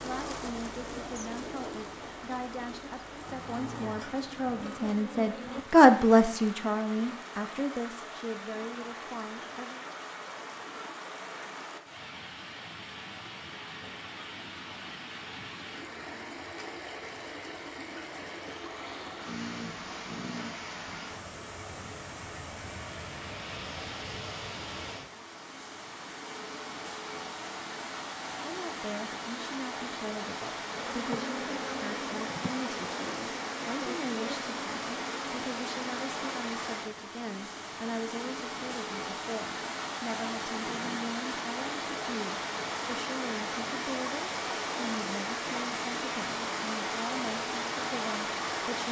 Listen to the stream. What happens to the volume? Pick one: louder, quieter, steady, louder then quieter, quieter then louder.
louder.